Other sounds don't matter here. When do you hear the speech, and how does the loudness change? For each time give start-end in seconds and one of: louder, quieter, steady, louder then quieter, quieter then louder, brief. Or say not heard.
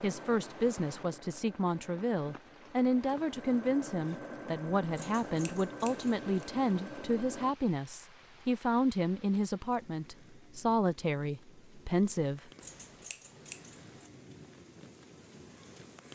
0.0-12.5 steady.